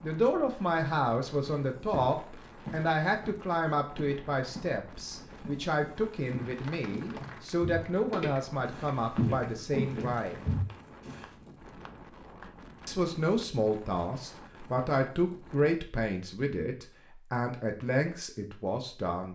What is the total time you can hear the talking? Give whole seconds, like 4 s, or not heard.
17 s.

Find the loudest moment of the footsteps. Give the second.
9 s.